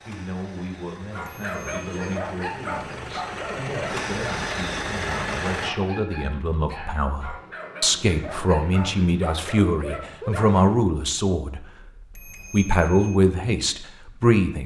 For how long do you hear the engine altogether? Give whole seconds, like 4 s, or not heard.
6 s.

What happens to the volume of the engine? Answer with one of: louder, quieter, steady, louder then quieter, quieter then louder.
louder.